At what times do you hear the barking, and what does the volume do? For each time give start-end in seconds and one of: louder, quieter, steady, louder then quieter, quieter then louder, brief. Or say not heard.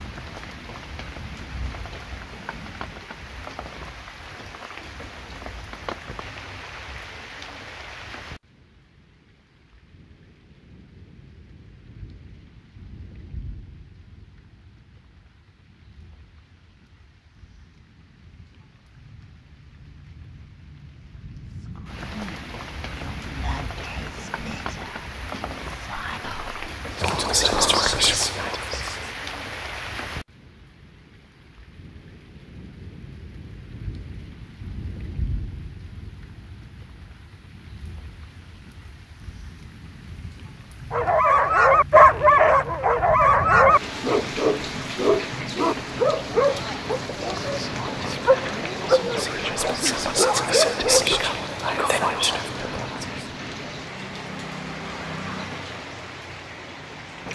40.9-51.2 quieter.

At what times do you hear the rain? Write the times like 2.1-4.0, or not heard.
0.0-57.2.